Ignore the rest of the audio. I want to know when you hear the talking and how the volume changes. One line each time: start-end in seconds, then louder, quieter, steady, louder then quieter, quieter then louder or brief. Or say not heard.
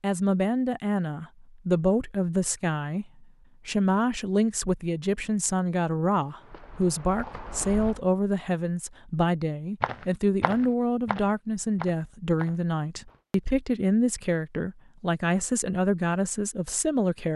0.0-17.3 steady.